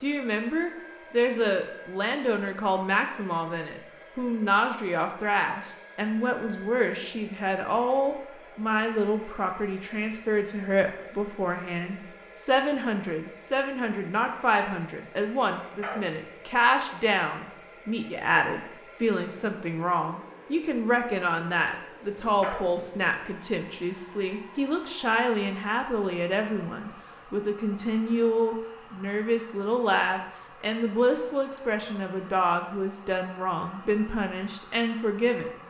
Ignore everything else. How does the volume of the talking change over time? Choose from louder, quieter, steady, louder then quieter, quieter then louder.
steady.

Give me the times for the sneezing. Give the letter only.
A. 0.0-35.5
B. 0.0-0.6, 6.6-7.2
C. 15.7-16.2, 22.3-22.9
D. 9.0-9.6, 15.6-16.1
C.